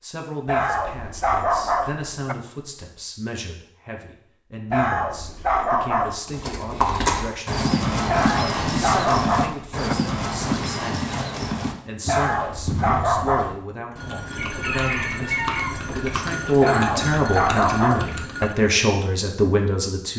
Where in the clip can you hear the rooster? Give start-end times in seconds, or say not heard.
14.3-16.1.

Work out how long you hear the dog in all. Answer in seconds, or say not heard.
9 s.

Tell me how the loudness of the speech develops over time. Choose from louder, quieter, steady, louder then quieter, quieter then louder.
louder.